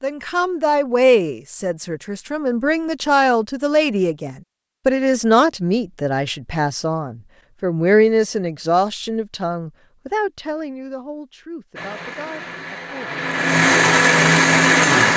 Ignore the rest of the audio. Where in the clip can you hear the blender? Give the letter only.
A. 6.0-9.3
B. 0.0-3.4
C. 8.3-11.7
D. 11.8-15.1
D.